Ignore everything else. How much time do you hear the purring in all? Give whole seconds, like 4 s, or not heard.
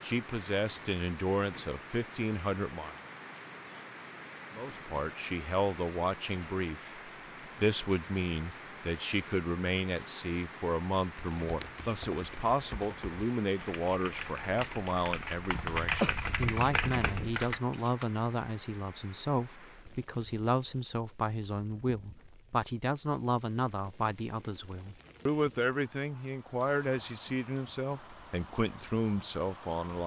not heard.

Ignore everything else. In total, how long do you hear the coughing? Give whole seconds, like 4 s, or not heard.
2 s.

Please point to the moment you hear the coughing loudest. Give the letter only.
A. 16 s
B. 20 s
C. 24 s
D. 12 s
A.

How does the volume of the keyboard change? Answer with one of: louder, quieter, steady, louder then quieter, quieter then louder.
louder.